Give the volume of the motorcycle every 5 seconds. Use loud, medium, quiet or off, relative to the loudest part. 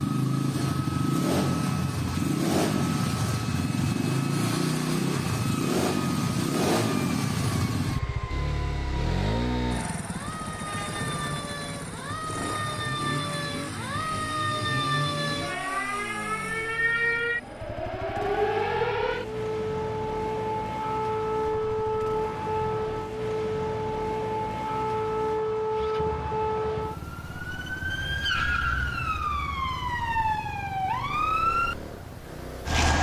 loud, loud, medium, quiet, quiet, quiet, quiet.